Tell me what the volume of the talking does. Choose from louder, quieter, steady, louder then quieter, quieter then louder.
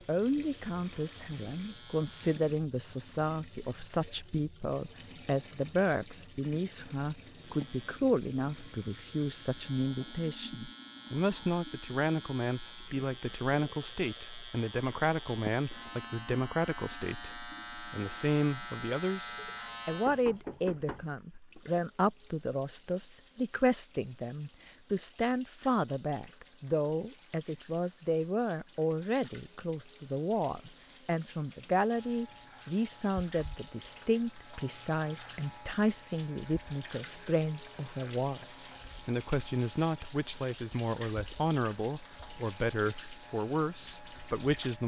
steady.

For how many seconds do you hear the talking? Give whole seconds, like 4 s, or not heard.
45 s.